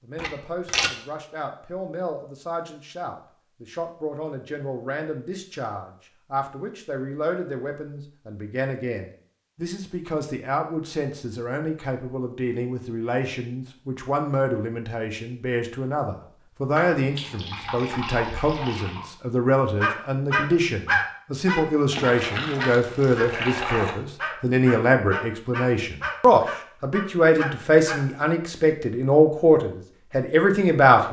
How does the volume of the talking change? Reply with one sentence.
The volume of the talking goes up.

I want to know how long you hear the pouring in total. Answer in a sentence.
You can hear the pouring for 5 seconds altogether.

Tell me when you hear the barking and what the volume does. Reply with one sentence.
The barking can be heard from 19.8 to 28.1 s, getting quieter.